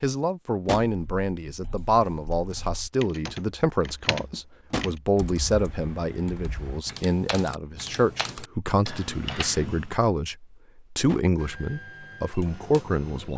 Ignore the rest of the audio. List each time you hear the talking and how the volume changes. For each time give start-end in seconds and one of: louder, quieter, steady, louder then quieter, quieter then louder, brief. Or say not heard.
0.0-13.3 steady.